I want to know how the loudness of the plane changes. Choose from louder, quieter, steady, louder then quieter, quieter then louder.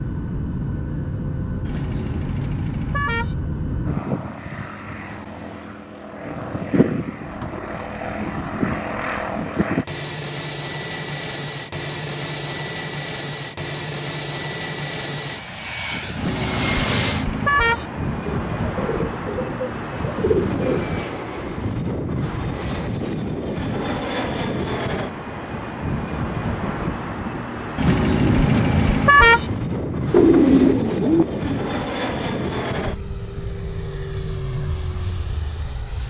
steady.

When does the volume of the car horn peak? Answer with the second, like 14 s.
29 s.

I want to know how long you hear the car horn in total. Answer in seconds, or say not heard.
5 s.